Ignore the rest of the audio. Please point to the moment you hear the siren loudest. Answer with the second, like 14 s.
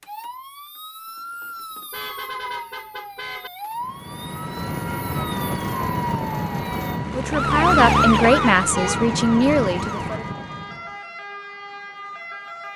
8 s.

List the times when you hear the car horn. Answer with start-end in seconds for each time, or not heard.
1.9-3.5, 8.2-9.1.